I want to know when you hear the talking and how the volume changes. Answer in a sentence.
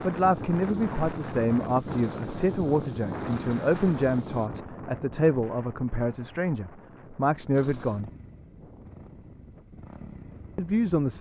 You can hear the talking from 0.0 to 8.1 s, at a steady volume; and briefly from 10.6 to 11.1 s.